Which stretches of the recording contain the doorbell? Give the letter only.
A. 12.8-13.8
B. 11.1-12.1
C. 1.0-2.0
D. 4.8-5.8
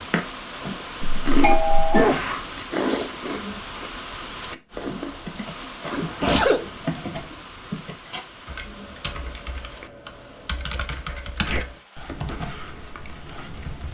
C.